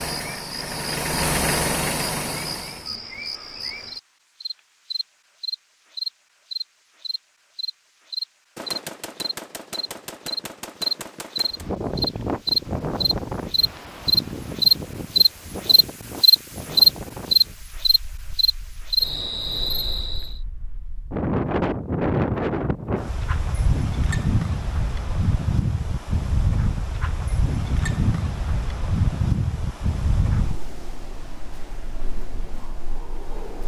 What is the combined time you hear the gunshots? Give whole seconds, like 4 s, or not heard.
3 s.